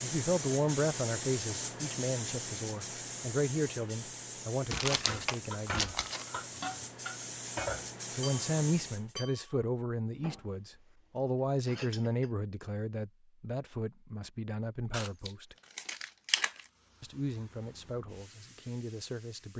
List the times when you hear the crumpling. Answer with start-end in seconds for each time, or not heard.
4.7-6.2, 14.9-16.6.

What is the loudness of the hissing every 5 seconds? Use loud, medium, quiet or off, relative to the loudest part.
loud, loud, off, quiet.